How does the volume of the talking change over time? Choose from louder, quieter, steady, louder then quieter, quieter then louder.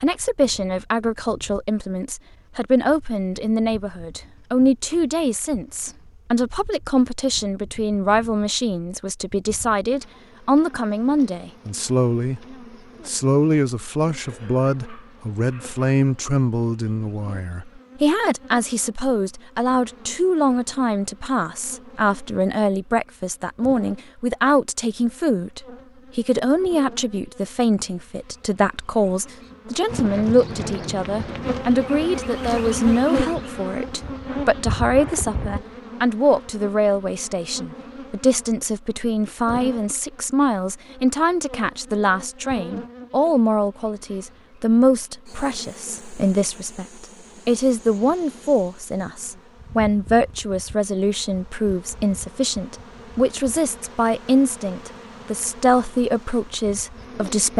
steady.